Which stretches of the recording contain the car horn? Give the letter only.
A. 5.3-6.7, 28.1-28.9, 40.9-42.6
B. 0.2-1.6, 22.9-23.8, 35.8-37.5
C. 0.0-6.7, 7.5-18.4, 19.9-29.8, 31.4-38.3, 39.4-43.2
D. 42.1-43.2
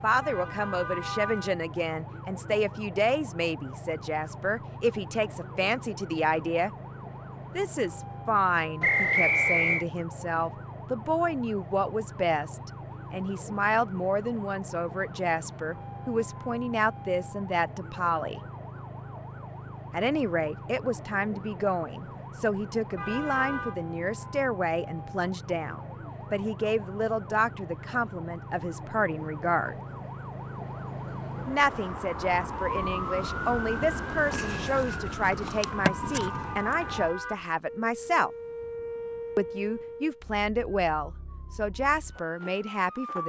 B.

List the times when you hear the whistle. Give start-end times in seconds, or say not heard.
8.8-9.8.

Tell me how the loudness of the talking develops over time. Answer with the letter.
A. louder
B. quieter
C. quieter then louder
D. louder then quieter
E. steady
E.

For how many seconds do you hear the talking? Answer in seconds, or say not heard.
38 s.